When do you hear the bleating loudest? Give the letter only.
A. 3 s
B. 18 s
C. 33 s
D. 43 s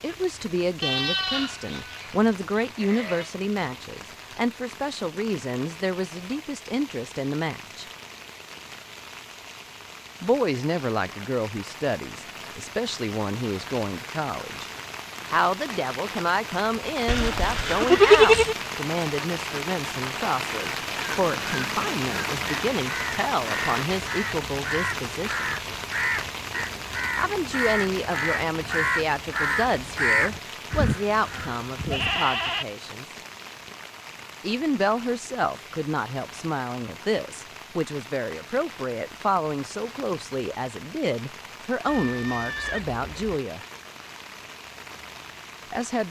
B.